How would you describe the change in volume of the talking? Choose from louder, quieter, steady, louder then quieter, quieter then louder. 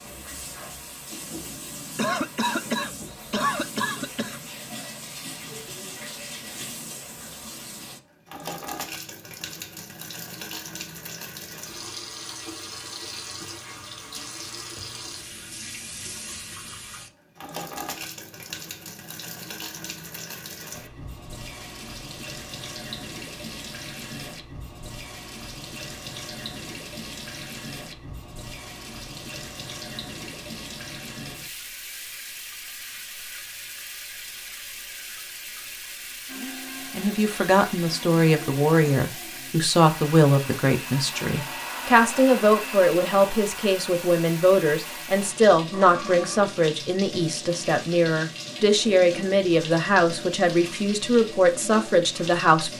steady.